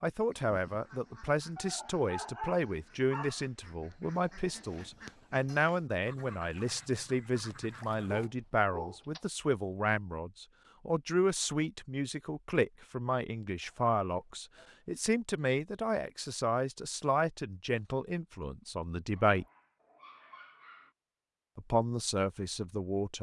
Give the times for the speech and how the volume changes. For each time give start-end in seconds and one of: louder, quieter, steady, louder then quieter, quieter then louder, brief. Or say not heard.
0.0-19.4 steady
21.6-23.1 brief.